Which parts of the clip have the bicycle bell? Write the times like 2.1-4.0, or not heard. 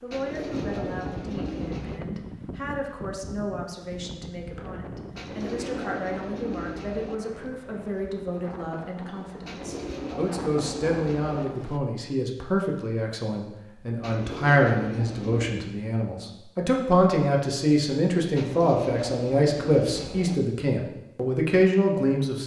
not heard.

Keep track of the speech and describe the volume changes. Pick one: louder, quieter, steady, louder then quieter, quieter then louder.
louder.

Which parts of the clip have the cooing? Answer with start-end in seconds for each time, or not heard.
0.1-2.0, 5.2-7.2, 9.4-11.4, 14.0-15.6, 18.4-20.4.